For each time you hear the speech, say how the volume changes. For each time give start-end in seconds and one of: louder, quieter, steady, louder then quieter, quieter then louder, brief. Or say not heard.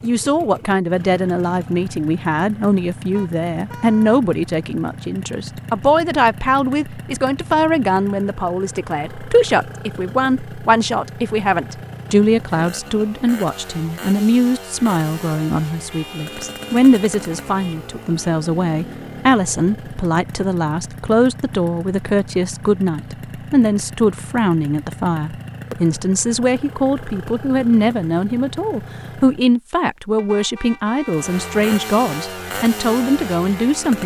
0.0-34.0 steady.